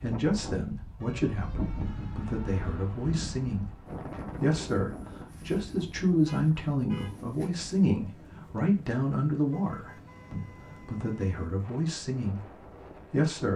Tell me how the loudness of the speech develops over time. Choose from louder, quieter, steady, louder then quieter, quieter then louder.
louder then quieter.